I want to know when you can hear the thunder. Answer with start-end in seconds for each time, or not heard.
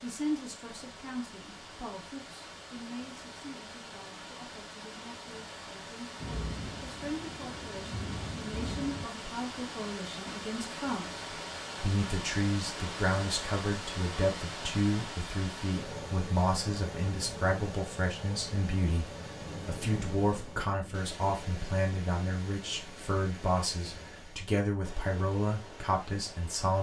6.2-9.1, 19.3-21.0.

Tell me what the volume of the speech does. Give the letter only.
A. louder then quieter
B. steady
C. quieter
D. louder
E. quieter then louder
D.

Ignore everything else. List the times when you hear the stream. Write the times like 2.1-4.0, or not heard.
0.0-26.7.